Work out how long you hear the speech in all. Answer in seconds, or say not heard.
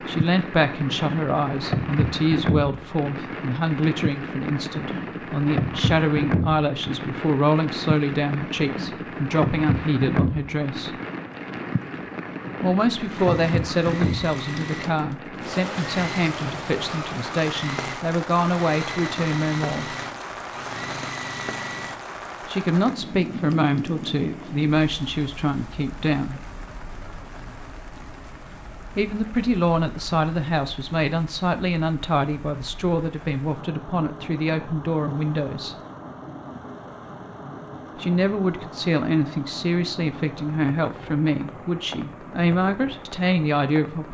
35 s.